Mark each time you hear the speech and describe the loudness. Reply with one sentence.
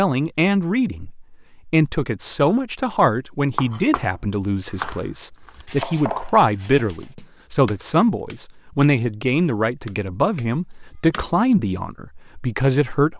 You can hear the speech from 0.0 to 13.1 s, at a steady volume.